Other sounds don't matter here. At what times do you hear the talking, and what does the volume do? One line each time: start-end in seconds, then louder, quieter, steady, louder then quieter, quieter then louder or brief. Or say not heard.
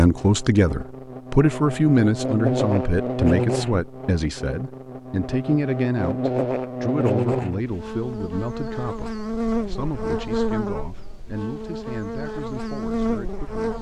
0.0-13.7 quieter.